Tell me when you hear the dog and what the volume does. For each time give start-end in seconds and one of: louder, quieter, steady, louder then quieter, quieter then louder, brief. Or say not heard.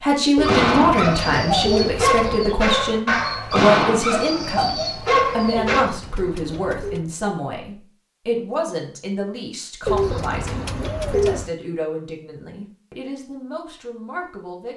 0.3-5.8 steady.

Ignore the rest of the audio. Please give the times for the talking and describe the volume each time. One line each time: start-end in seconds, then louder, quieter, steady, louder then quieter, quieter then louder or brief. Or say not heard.
0.0-14.7 quieter.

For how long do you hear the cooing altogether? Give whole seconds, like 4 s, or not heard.
5 s.